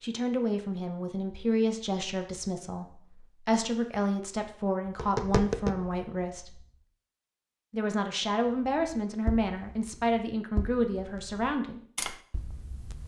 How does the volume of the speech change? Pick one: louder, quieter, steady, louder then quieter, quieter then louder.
steady.